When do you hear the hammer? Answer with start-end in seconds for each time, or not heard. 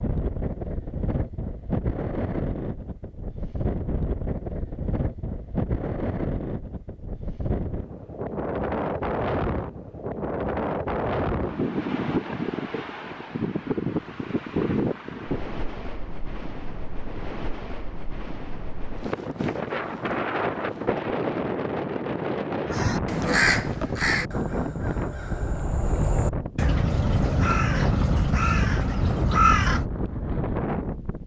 not heard.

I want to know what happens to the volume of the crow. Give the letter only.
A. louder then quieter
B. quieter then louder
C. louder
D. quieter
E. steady
B.